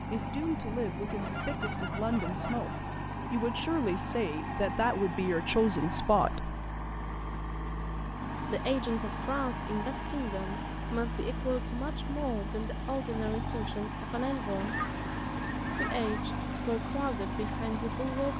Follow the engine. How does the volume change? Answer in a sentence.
The volume of the engine stays about the same.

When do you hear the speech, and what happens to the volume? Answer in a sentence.
You can hear the speech from 0.1 to 6.5 s, getting louder; from 8.4 to 14.8 s, at a steady volume; and briefly from 15.8 to 18.3 s.